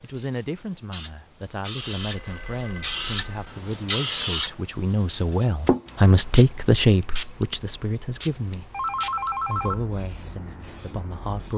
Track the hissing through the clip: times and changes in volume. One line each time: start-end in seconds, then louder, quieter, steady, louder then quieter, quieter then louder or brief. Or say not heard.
0.0-11.5 louder then quieter.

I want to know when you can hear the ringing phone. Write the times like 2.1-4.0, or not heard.
1.8-3.5, 8.7-9.8.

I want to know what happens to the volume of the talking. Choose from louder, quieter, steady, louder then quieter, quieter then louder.
louder then quieter.